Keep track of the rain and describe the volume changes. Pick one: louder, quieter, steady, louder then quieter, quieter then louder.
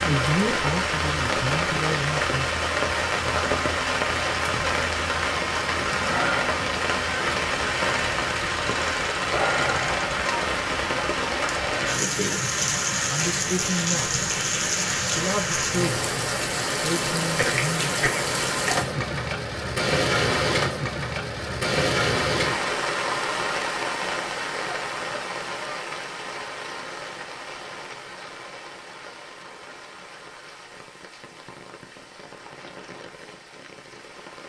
quieter.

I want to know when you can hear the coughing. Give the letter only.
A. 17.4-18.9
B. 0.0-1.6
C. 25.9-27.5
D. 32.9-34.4
A.